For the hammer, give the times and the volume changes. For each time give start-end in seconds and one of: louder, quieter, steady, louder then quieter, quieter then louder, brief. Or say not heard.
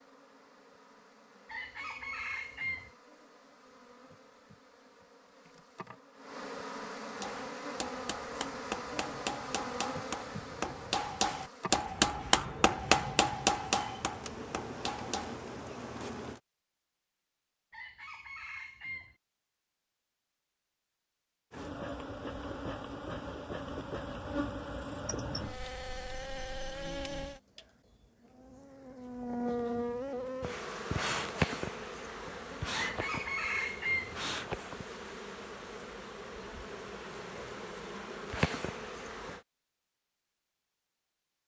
7.2-15.4 louder then quieter.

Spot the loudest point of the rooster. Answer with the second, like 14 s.
34 s.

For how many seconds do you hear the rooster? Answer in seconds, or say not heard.
4 s.